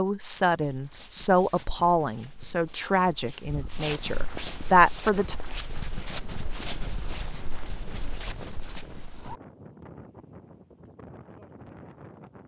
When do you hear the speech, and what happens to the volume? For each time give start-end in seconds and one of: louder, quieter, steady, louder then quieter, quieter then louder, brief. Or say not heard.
0.0-5.3 quieter then louder.